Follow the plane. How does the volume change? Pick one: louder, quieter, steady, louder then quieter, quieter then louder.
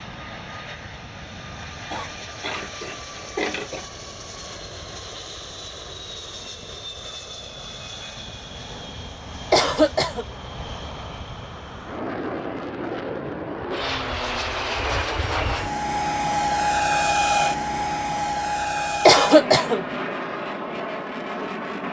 louder.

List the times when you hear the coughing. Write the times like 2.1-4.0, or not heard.
1.9-3.9, 9.5-10.2, 19.1-19.9.